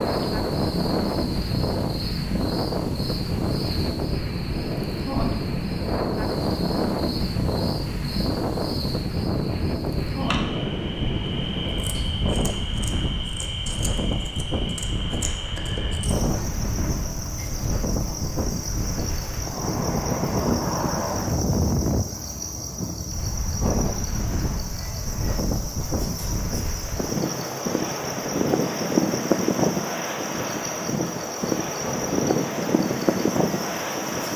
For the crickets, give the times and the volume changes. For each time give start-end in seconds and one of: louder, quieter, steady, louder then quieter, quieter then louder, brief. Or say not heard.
0.0-34.3 steady.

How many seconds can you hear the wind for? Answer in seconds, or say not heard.
34 s.